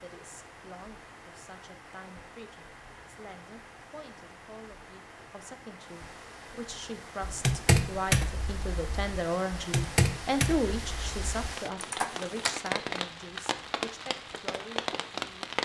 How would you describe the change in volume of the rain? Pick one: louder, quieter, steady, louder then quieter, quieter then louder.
louder.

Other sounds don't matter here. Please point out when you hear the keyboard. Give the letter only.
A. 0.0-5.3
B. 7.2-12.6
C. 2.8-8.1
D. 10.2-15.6
B.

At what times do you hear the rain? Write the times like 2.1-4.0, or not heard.
0.0-15.6.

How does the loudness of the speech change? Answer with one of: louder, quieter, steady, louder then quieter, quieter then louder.
louder then quieter.